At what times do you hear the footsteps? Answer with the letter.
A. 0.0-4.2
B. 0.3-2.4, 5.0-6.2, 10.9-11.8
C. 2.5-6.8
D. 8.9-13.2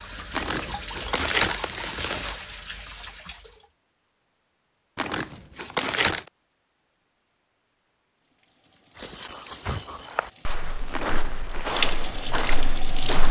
D.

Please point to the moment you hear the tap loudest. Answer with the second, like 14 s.
12 s.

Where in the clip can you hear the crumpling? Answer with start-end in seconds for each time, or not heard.
0.3-2.4, 5.0-6.2, 10.9-11.8.